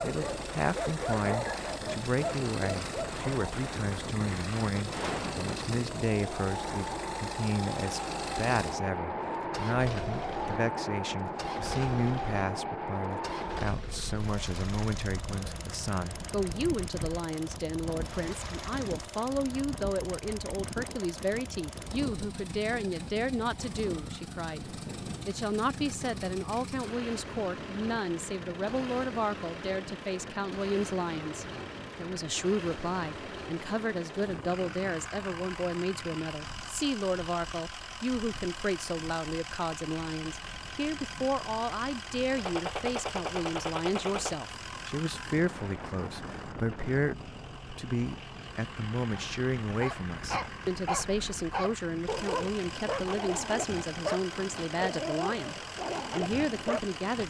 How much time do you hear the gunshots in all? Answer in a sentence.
The gunshots can be heard for 3 seconds in total.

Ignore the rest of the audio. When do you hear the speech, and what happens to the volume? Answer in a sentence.
You can hear the speech from 0.0 to 57.2 s, at a steady volume.